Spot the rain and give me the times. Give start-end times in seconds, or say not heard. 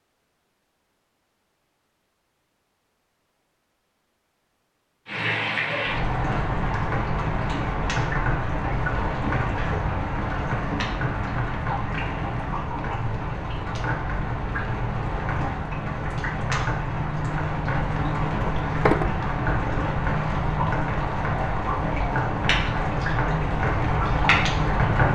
5.0-25.0.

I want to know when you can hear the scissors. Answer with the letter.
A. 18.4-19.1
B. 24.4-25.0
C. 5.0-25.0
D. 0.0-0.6
A.